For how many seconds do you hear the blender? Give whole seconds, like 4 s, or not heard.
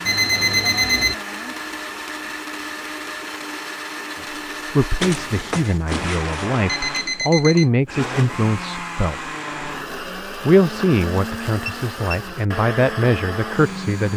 14 s.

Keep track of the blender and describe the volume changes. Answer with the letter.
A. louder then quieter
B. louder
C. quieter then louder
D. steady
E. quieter
D.